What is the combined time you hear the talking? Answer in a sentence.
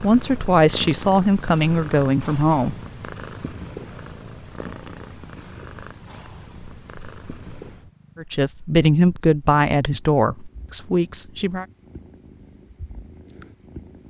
You can hear the talking for 6 seconds altogether.